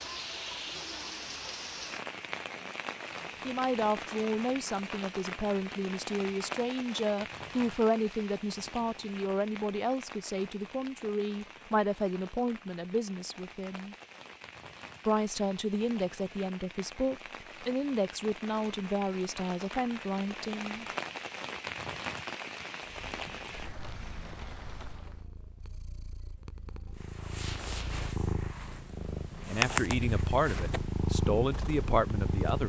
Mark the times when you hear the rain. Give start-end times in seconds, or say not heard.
0.0-25.2.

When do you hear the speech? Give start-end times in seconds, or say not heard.
3.5-13.9, 15.1-20.9, 29.4-32.6.